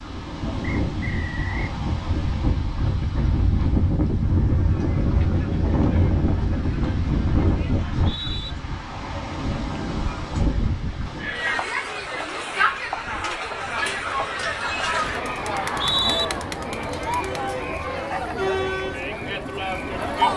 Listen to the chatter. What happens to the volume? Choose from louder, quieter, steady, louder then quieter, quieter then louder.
louder.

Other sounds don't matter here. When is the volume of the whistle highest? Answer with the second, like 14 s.
16 s.